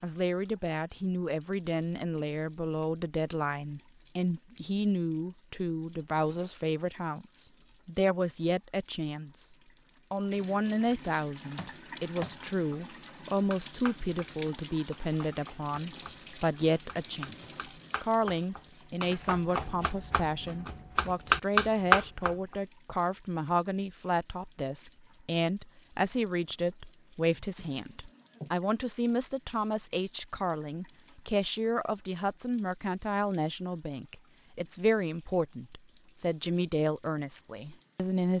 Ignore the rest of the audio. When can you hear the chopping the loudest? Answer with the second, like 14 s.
22 s.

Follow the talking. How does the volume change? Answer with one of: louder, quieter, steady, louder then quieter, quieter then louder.
steady.